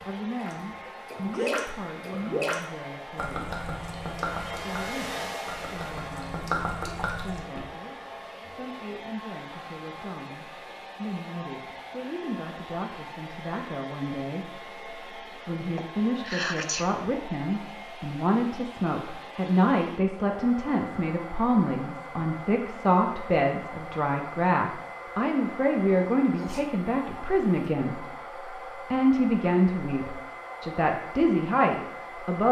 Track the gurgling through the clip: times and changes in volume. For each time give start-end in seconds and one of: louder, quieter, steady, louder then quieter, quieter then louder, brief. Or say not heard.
0.3-7.7 quieter then louder.